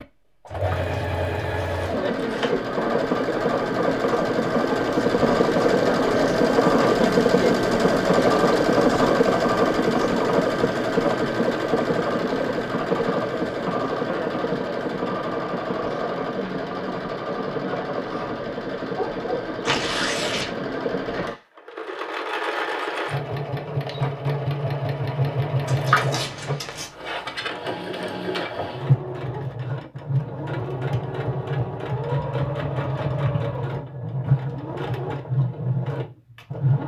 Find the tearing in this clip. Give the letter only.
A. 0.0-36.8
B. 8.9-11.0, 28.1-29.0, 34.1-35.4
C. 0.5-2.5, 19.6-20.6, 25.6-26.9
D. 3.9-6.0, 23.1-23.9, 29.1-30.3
C.